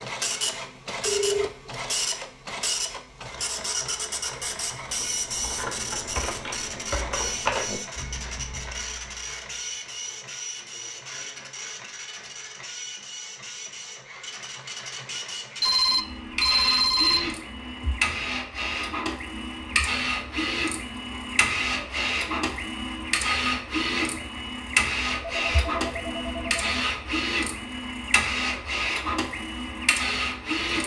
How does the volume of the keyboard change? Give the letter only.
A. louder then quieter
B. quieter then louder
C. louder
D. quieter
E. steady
A.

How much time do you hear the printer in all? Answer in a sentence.
You can hear the printer for 31 seconds altogether.